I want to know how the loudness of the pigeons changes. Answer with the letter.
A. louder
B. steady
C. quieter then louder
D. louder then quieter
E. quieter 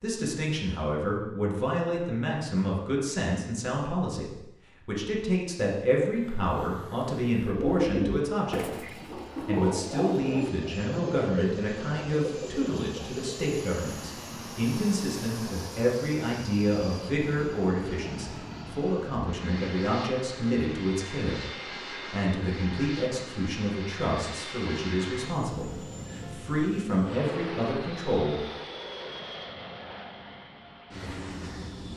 E.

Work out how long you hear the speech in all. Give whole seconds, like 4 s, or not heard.
28 s.